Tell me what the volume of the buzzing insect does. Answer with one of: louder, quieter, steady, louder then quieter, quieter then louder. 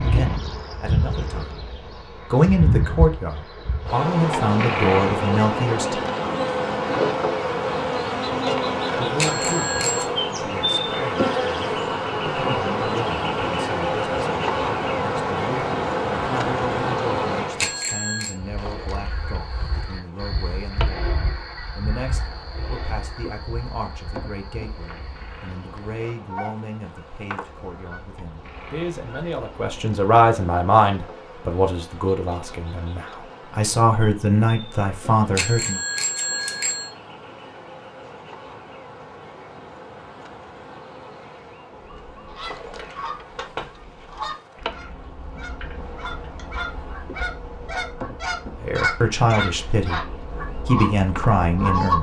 quieter.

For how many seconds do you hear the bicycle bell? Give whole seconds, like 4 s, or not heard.
3 s.